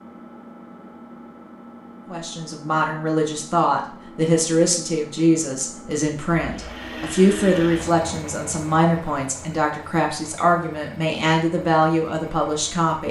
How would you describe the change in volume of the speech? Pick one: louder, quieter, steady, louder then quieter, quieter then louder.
steady.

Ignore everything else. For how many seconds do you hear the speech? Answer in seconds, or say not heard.
11 s.